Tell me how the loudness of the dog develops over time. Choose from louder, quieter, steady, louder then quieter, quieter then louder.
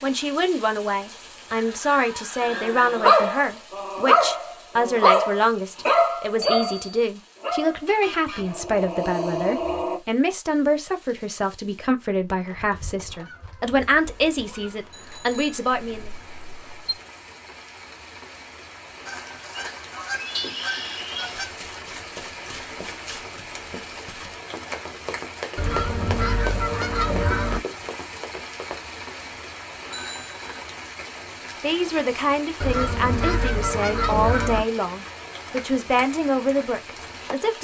quieter.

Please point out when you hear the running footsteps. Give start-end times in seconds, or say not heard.
21.3-28.9.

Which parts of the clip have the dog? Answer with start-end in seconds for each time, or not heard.
2.4-10.0.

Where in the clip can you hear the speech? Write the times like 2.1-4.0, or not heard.
0.0-16.1, 31.6-37.5.